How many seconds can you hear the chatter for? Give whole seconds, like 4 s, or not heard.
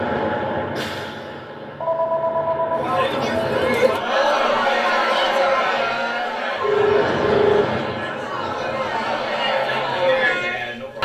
8 s.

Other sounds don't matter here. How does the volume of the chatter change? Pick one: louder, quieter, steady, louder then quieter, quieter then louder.
quieter then louder.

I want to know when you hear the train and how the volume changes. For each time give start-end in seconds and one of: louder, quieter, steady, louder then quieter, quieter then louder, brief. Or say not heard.
0.0-4.1 quieter then louder
6.5-9.3 brief.